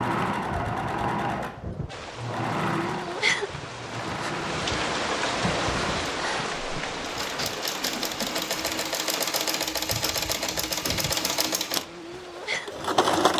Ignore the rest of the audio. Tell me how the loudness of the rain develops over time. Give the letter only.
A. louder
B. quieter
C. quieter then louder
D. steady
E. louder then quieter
E.